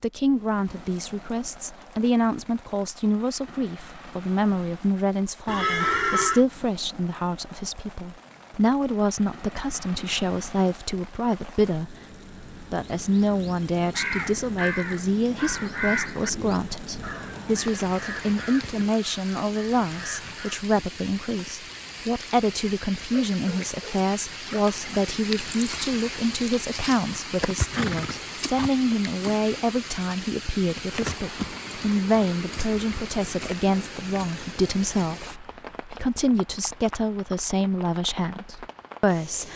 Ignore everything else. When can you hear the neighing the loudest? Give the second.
6 s.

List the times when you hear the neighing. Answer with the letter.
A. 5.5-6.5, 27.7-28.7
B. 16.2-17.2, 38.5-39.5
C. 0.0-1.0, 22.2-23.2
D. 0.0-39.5
A.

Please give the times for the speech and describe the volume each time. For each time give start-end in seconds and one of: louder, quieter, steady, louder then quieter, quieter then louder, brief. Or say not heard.
0.0-39.5 steady.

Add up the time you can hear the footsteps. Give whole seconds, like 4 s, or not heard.
not heard.